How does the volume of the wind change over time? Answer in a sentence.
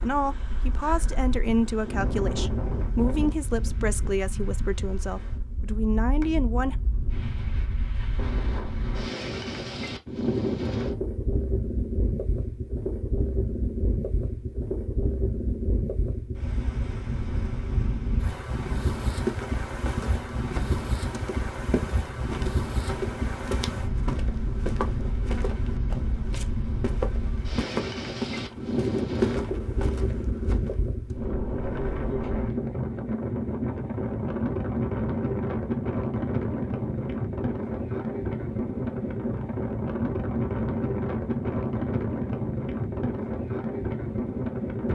The volume of the wind goes up.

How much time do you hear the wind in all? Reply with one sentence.
You can hear the wind for 45 seconds altogether.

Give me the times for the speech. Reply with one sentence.
You can hear the speech from 0.0 to 6.8 s.